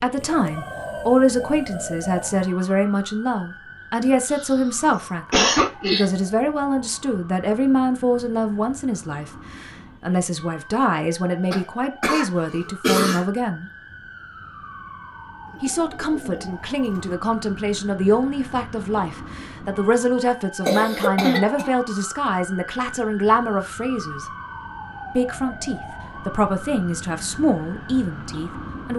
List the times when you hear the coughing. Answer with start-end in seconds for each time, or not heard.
4.3-6.0, 11.5-13.2, 20.6-21.7.